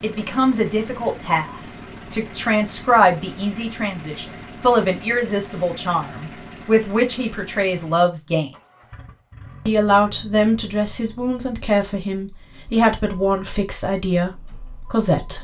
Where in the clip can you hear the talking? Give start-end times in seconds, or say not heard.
0.0-8.5, 9.7-15.3.